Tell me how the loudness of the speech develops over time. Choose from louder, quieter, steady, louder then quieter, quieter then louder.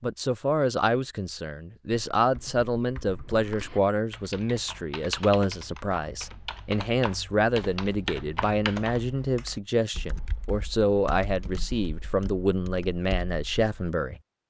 steady.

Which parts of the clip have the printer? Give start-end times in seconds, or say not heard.
not heard.